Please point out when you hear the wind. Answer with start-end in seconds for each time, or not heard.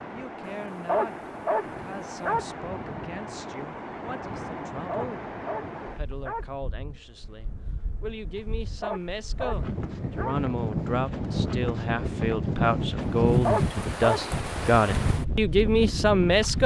0.0-16.6.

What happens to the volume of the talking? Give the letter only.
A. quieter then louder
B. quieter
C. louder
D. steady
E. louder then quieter
C.